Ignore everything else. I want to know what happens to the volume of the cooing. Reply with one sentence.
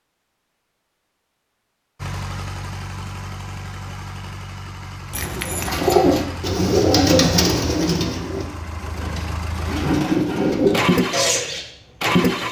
The volume of the cooing goes down, then up.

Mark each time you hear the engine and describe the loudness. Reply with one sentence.
You can hear the engine from 2.0 to 12.4 s, getting louder.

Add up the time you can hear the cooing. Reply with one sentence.
The cooing can be heard for 6 seconds in total.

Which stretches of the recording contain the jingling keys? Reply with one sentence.
The jingling keys can be heard from 5.1 to 6.0 s.